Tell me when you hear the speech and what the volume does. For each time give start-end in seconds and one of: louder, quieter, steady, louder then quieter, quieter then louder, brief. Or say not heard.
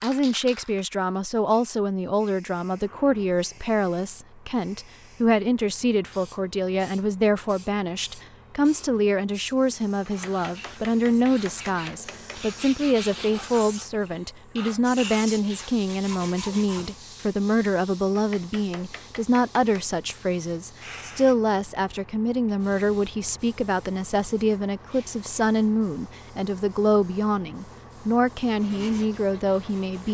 0.0-30.0 steady.